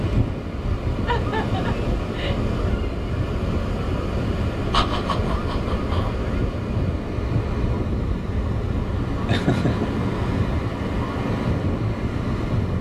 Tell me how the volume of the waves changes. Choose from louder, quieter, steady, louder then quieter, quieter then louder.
steady.